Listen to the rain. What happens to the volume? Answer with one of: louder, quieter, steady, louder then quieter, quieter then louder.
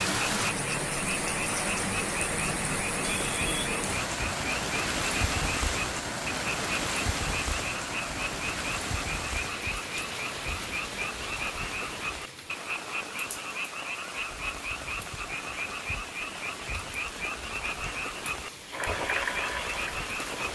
quieter.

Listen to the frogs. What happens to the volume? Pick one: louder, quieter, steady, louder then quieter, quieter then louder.
steady.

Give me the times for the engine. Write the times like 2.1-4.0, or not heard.
18.7-20.5.